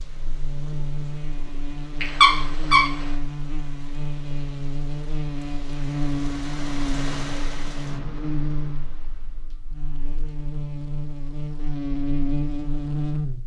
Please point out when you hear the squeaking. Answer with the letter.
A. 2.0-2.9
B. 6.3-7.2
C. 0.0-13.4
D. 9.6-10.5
A.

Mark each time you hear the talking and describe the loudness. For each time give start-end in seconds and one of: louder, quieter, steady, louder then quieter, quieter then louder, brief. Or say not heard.
not heard.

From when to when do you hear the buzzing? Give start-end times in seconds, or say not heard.
0.0-13.4.